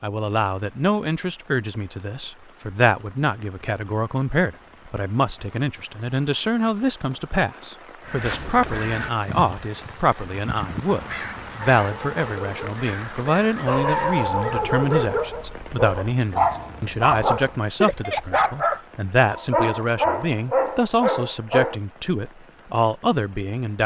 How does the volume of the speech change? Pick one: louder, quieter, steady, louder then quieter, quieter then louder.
steady.